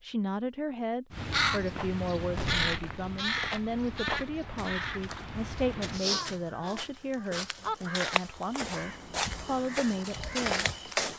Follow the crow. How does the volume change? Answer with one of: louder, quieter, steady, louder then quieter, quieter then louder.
quieter.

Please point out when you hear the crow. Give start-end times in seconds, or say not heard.
1.1-10.6.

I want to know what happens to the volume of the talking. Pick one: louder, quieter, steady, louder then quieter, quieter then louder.
steady.